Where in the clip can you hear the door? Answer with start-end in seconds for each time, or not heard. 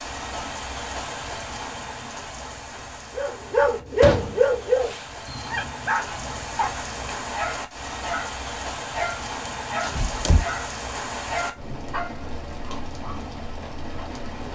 4.0-5.0, 9.8-10.4.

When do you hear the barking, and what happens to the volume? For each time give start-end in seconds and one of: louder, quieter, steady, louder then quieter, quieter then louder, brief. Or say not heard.
3.1-13.2 quieter.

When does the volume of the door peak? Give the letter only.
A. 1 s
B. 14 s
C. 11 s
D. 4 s
D.